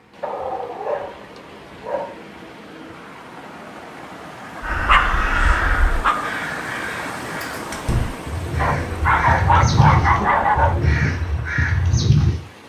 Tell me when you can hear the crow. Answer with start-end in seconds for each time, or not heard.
4.6-12.4.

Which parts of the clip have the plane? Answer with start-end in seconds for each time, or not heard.
not heard.